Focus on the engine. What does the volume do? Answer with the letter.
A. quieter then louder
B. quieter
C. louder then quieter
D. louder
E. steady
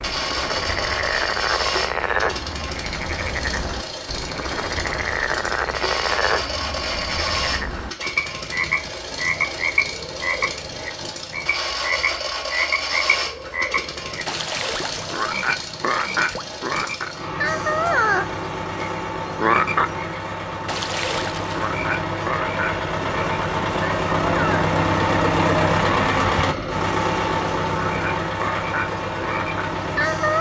D.